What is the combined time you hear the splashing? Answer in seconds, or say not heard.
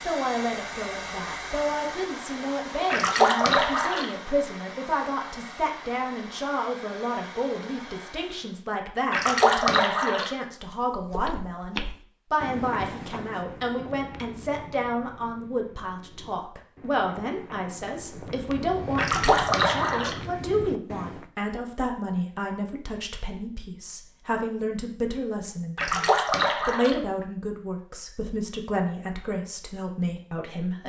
5 s.